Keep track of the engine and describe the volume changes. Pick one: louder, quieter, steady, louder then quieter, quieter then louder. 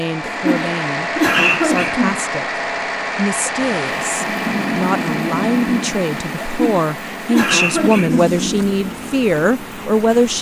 quieter.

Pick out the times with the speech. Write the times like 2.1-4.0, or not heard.
0.0-10.3.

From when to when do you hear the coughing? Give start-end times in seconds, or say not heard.
0.2-2.2, 6.5-8.3.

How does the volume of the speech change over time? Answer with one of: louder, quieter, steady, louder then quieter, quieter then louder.
louder.